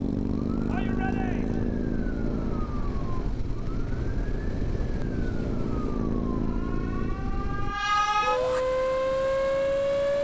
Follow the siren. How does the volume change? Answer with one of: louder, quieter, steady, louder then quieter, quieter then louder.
louder.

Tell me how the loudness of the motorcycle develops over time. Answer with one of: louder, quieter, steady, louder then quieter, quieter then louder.
quieter.